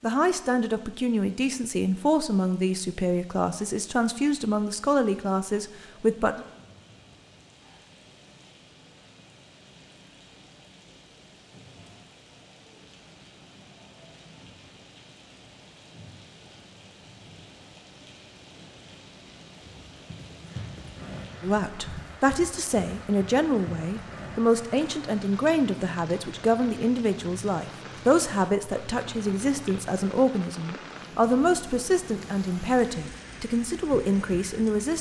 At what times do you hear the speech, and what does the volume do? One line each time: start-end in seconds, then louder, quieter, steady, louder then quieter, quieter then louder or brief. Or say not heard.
0.0-6.5 steady
21.4-34.9 steady.